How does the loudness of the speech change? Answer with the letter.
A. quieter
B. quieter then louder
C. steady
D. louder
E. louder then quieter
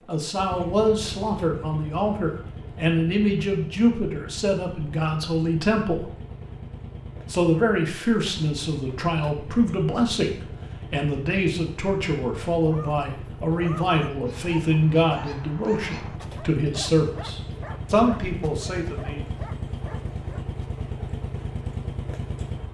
C.